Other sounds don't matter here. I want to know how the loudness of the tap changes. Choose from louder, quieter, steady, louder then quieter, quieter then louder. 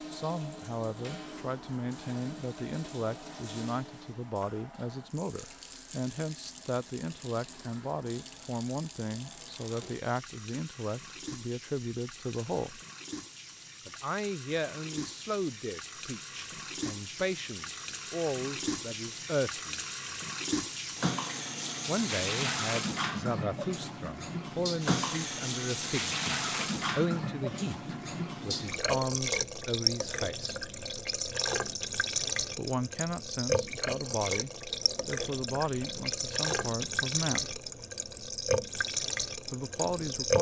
louder.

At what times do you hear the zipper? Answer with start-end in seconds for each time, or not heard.
not heard.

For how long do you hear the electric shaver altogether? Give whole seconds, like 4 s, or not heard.
not heard.